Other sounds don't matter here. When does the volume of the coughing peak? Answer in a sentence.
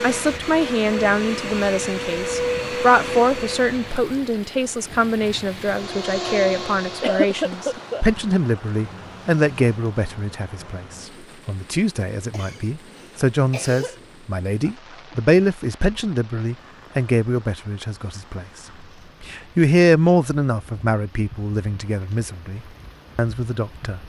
The volume of the coughing peaks at 7 seconds.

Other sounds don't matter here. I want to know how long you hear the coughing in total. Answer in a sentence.
The coughing can be heard for 3 seconds in total.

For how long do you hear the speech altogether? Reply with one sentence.
The speech can be heard for 23 seconds in total.